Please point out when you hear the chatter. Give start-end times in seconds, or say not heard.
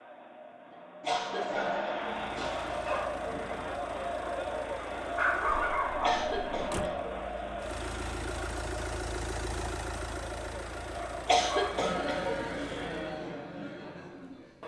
0.0-14.6.